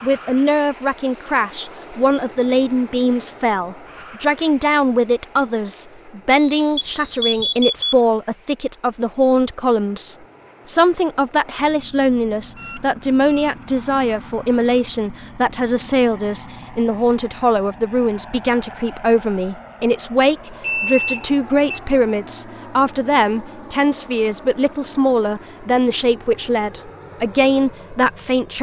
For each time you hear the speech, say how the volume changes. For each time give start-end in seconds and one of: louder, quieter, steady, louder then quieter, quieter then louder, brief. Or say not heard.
0.0-28.5 steady.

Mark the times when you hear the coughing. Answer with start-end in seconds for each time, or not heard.
not heard.